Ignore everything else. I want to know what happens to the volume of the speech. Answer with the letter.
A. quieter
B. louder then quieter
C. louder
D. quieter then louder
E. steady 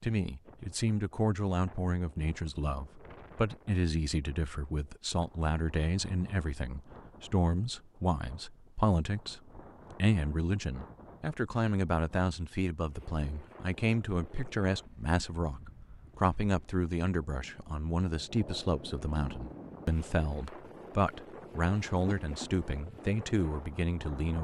E.